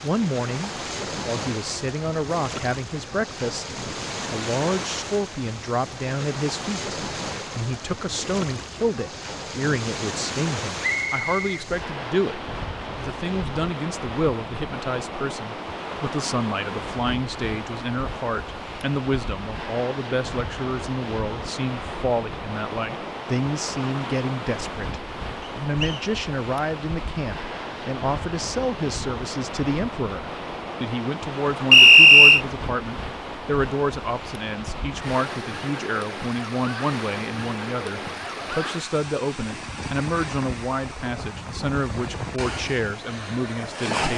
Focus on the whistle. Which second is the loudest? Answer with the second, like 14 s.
32 s.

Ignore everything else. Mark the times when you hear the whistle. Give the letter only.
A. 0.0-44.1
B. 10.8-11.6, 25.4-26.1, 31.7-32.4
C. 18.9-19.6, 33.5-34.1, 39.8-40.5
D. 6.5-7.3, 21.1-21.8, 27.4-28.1
B.